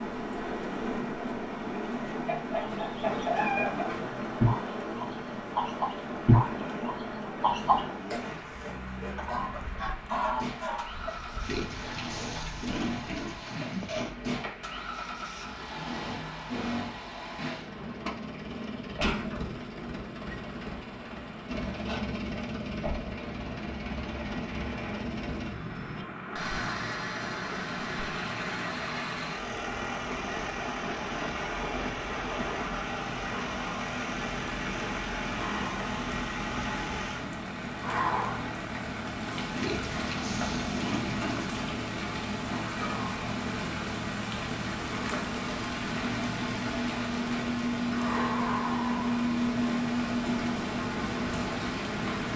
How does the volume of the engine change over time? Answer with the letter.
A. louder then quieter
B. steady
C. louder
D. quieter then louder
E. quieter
C.